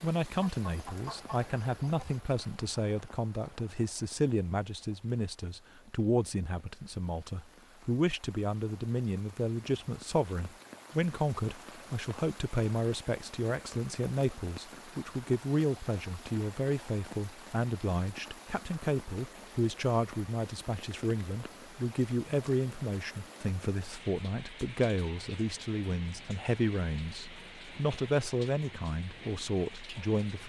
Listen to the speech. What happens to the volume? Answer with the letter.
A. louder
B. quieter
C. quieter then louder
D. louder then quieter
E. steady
E.